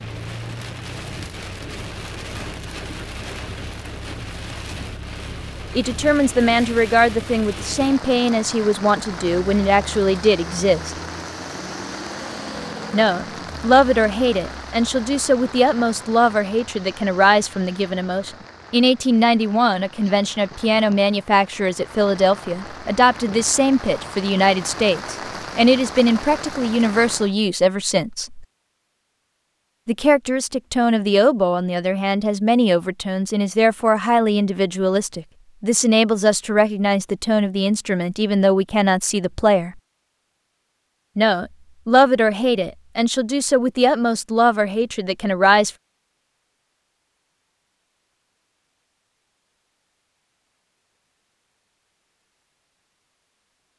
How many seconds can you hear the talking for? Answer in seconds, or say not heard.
35 s.